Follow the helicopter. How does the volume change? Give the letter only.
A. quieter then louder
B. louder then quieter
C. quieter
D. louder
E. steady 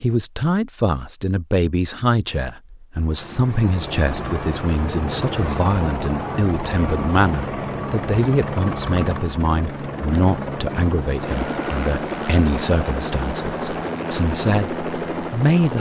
E.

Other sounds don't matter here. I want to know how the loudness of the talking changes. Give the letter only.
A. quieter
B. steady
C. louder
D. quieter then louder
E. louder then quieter
B.